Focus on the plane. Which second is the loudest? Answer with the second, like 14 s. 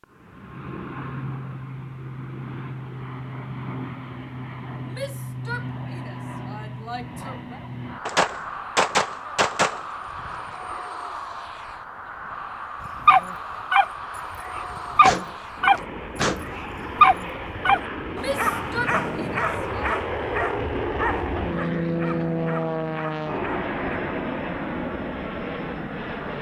22 s.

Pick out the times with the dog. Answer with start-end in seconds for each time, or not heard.
12.8-23.9.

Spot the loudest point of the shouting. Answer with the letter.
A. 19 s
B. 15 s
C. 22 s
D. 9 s
A.